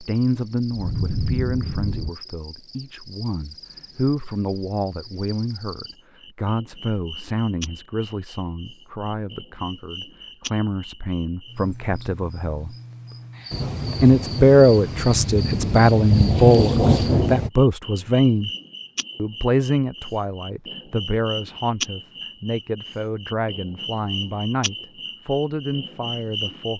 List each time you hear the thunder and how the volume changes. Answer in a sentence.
The thunder can be heard briefly from 0.7 to 2.1 s; and from 13.5 to 17.5 s, getting louder.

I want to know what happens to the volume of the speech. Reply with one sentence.
The volume of the speech goes up, then down.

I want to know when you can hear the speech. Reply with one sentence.
You can hear the speech from 0.0 to 12.8 s, from 14.0 to 18.5 s and from 19.1 to 26.7 s.